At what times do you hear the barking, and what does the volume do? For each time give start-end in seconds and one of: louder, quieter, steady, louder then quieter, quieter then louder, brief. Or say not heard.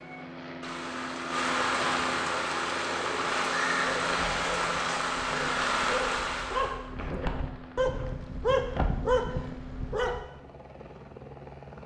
4.0-10.2 louder.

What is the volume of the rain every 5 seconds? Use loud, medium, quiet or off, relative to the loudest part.
loud, loud, off.